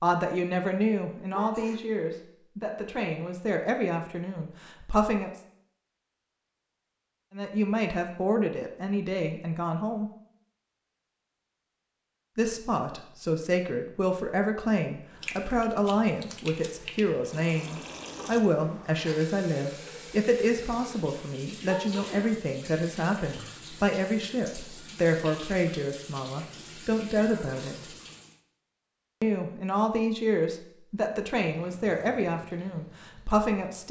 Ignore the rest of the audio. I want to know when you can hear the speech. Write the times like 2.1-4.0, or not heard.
0.0-5.3, 7.3-10.1, 12.3-27.9, 29.2-33.8.